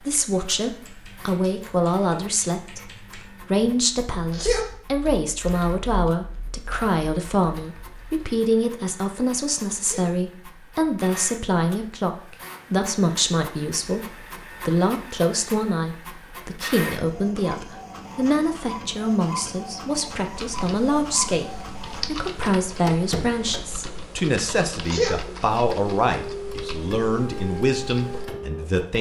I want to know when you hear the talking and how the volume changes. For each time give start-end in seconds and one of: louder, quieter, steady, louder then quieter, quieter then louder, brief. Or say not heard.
0.0-28.9 steady.